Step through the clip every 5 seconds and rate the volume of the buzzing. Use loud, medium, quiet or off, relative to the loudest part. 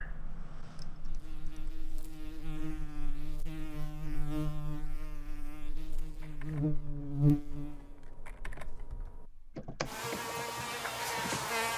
medium, loud, loud.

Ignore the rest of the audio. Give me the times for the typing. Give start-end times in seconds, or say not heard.
0.0-1.8, 6.0-11.5.